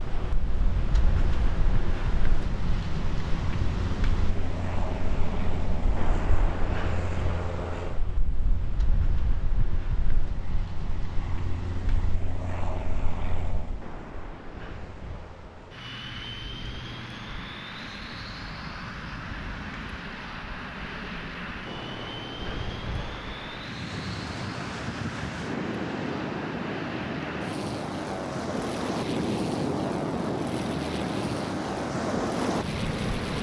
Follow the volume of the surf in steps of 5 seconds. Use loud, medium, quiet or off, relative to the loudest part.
medium, medium, quiet, quiet, medium, loud, loud.